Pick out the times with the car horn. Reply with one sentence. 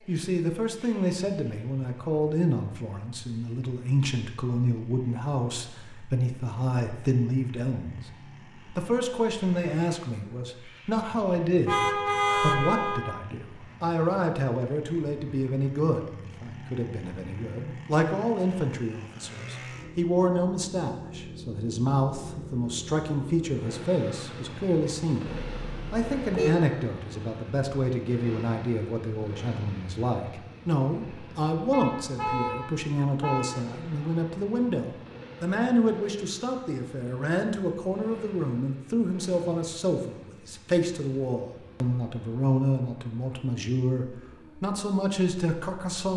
You can hear the car horn from 11.7 to 13.1 s, from 25.4 to 26.6 s and from 31.7 to 33.5 s.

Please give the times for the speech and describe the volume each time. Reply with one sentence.
The speech can be heard from 0.1 to 8.1 s, at a steady volume; and from 8.7 to 46.1 s, at a steady volume.